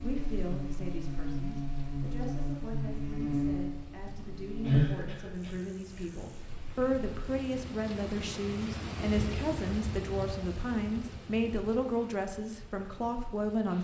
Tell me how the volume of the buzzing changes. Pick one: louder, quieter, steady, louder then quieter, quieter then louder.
louder then quieter.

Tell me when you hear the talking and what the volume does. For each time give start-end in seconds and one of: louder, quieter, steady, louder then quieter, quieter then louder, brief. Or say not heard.
0.0-13.7 louder.